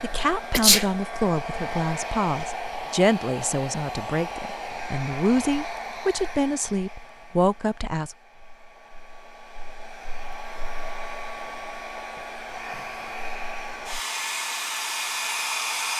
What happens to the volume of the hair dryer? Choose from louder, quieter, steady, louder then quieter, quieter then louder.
quieter then louder.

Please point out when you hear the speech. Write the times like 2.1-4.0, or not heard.
0.0-8.2.